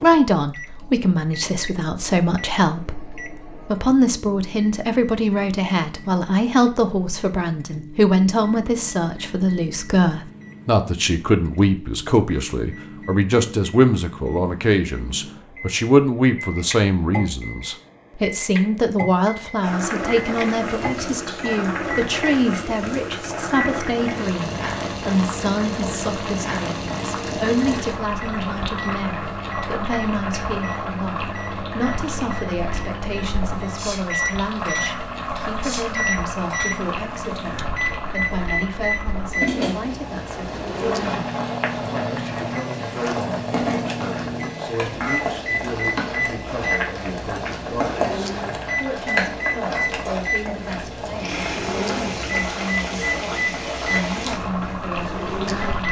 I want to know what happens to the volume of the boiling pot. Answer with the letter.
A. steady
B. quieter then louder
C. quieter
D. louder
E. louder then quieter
A.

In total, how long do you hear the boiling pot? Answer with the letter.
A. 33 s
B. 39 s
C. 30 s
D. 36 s
D.